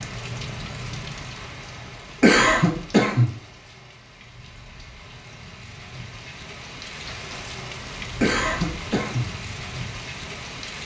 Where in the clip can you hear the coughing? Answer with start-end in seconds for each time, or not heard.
2.2-3.3, 8.2-9.2.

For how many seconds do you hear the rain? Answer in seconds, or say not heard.
11 s.